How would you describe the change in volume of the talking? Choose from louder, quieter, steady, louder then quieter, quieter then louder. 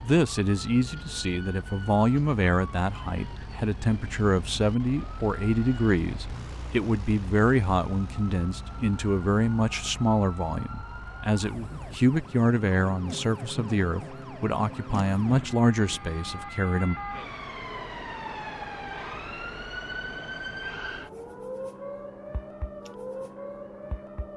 steady.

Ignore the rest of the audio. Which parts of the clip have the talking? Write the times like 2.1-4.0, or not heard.
0.0-16.9.